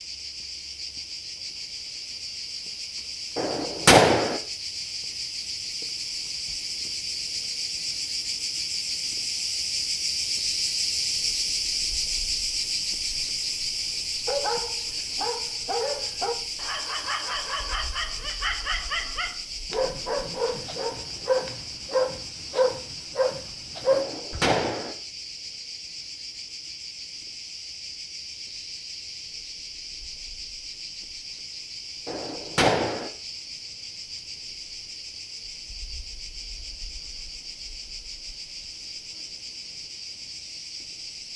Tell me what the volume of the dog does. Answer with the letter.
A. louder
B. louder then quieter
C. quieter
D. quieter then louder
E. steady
A.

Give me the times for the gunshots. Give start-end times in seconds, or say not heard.
3.4-4.4, 23.9-24.9, 32.0-33.1.